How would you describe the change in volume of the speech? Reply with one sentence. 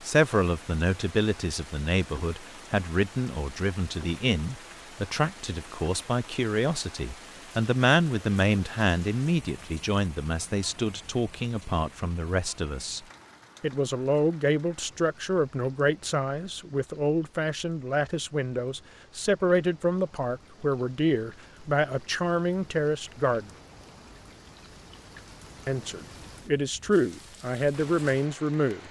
The volume of the speech stays about the same.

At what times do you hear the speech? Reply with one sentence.
The speech can be heard from 0.0 to 13.0 s, from 13.6 to 23.5 s and from 25.6 to 28.8 s.